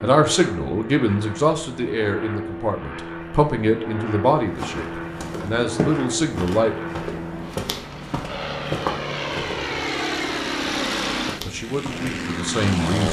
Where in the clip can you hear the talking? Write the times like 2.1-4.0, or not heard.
0.0-6.7, 11.4-13.0.